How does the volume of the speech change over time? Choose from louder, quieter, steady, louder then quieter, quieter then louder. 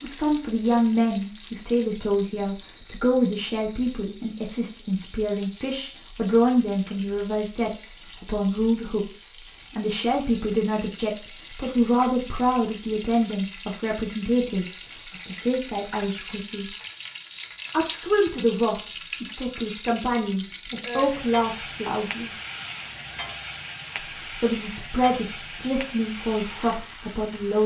steady.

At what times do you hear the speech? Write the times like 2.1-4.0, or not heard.
0.0-16.7, 17.7-22.3, 24.4-27.6.